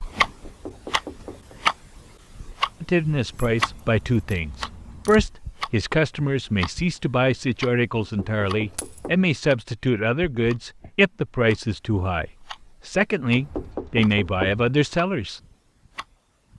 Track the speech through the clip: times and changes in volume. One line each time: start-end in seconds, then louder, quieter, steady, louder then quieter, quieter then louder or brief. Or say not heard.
2.8-15.4 steady.